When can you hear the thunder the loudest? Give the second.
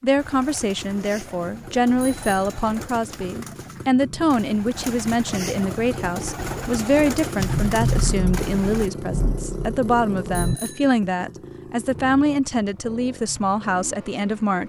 8 s.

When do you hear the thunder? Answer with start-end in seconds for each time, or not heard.
7.3-10.6.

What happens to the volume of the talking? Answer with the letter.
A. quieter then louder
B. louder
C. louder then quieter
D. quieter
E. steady
E.